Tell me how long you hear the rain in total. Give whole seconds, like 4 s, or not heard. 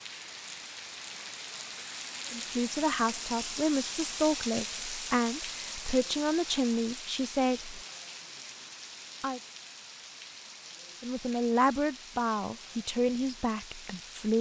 14 s.